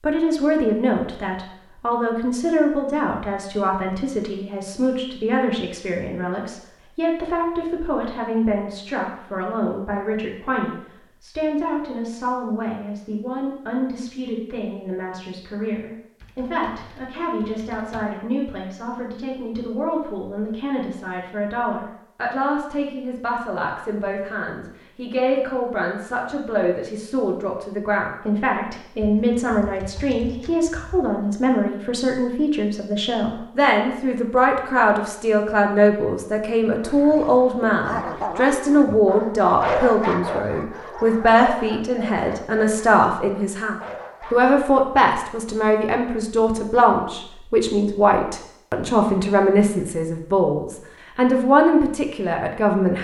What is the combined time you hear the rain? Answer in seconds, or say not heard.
not heard.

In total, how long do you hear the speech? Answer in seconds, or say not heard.
53 s.